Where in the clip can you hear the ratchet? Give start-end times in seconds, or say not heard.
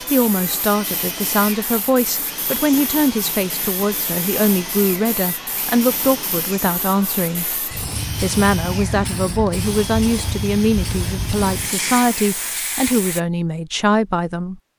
not heard.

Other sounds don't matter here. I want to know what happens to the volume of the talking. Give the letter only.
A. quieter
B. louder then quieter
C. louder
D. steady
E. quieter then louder
D.